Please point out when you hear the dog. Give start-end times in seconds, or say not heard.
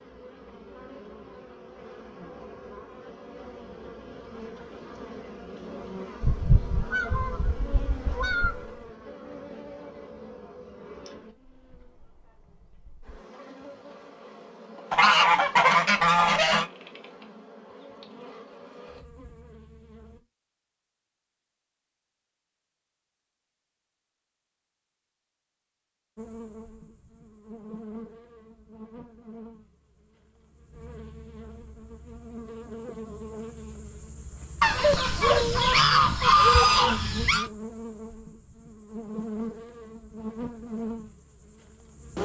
34.6-36.6.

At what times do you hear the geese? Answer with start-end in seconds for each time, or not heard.
6.2-8.7, 14.9-16.6, 34.6-37.5.